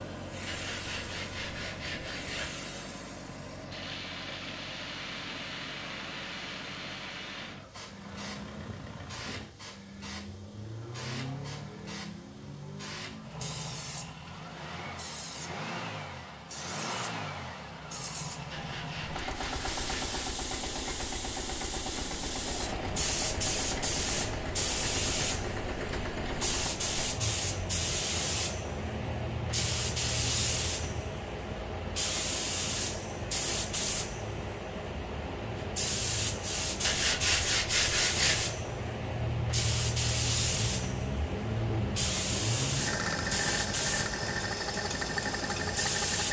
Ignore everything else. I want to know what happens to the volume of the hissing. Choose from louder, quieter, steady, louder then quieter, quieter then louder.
louder.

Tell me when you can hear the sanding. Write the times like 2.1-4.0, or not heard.
0.5-2.5, 18.5-20.4, 36.8-38.5.